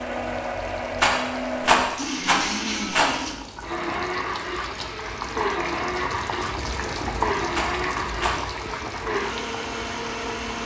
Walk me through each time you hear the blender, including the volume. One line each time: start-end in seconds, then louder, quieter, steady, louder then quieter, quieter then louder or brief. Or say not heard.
0.0-10.6 steady.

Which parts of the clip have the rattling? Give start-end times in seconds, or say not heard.
0.9-3.1, 7.5-8.4.